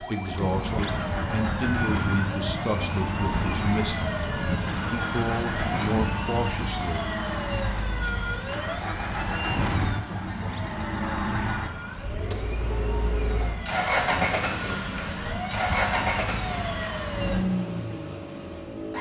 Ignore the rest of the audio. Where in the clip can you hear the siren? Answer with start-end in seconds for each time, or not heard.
0.0-17.4.